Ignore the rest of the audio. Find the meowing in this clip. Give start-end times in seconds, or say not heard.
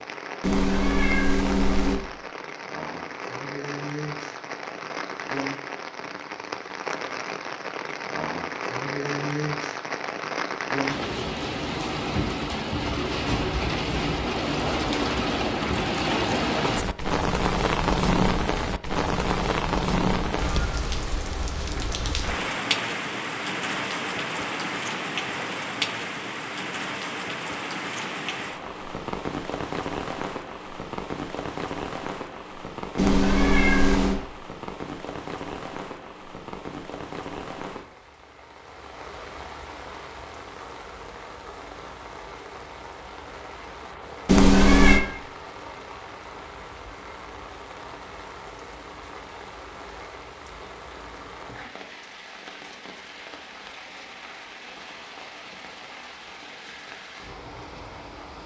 0.4-2.0, 33.0-34.2, 44.2-45.0.